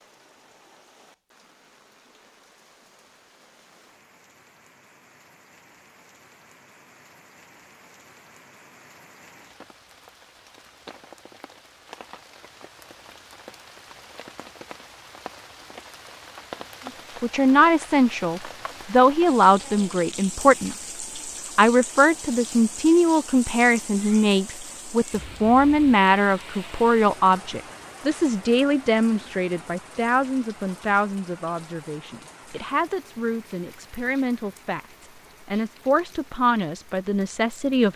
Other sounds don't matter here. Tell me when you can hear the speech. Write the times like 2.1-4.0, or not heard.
16.9-20.9, 21.6-37.9.